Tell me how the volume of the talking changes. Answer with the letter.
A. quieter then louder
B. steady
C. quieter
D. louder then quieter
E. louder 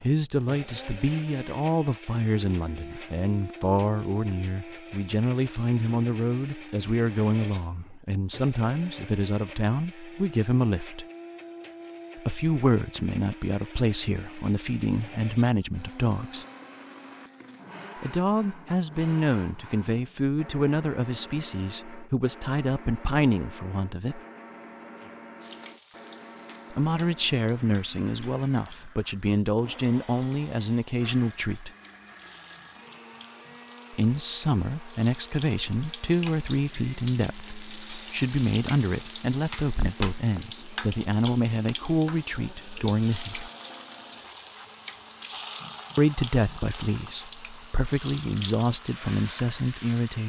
B.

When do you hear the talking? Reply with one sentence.
You can hear the talking from 0.0 to 11.1 s, from 12.2 to 16.4 s, from 18.0 to 24.2 s, from 26.7 to 31.7 s, from 33.9 to 43.5 s and from 46.0 to 50.2 s.